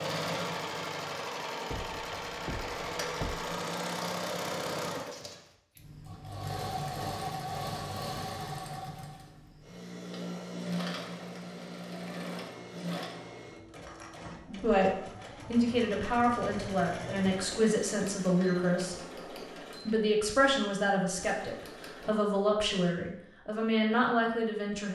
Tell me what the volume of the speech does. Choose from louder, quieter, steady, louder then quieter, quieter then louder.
steady.